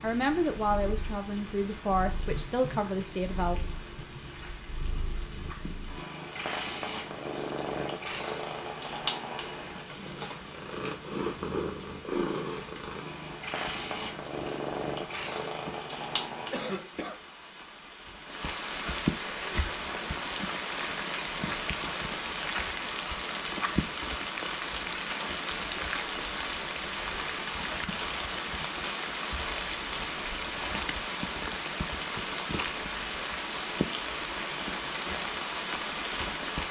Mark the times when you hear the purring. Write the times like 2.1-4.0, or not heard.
0.0-16.8.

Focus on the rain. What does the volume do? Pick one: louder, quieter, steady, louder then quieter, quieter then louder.
louder.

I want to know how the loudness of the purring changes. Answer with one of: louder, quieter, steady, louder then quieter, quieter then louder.
louder.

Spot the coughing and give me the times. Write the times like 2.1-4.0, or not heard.
16.5-17.2.